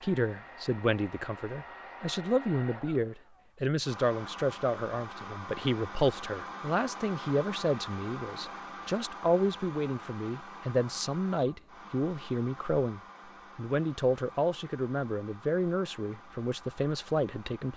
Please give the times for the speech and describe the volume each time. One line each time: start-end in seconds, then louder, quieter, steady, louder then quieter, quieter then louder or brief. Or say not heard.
0.0-17.7 steady.